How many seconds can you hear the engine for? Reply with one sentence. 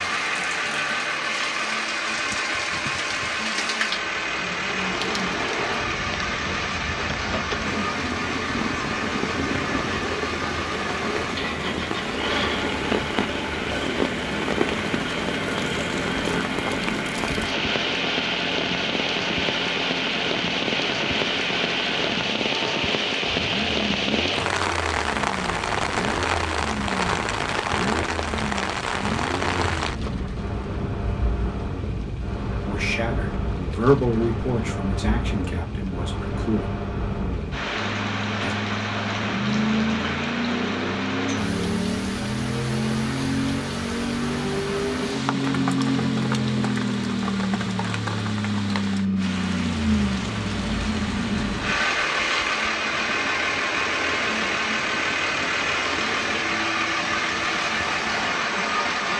You can hear the engine for 59 seconds altogether.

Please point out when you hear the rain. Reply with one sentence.
The rain can be heard from 0.1 to 59.1 s.